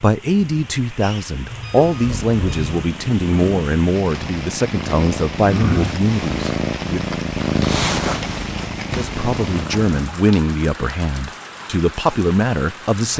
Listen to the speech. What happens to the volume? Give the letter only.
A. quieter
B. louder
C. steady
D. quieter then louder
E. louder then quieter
C.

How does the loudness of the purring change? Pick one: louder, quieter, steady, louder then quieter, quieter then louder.
louder then quieter.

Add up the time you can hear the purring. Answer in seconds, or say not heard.
8 s.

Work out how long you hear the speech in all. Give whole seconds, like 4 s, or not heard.
11 s.